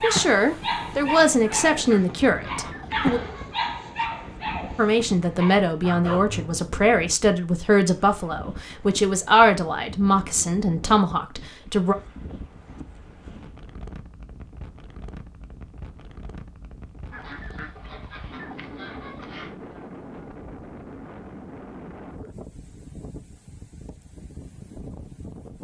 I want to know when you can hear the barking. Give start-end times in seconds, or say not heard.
0.0-6.7.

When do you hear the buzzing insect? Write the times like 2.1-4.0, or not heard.
not heard.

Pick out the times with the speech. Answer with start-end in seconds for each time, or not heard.
0.0-3.2, 4.8-11.9.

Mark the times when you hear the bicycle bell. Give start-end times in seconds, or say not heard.
not heard.